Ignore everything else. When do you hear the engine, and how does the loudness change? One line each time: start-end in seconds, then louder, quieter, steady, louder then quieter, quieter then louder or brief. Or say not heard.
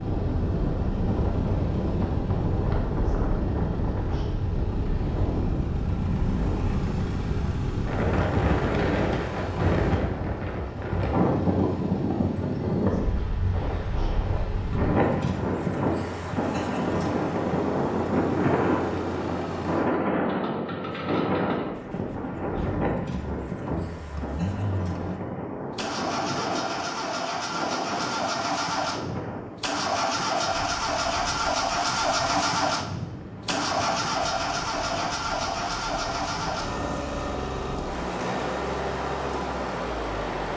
0.0-40.5 louder.